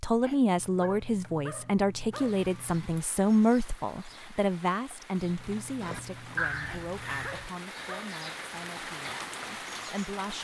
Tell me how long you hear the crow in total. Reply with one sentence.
You can hear the crow for 2 seconds altogether.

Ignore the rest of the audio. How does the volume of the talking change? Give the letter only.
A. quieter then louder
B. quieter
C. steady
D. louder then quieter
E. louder
B.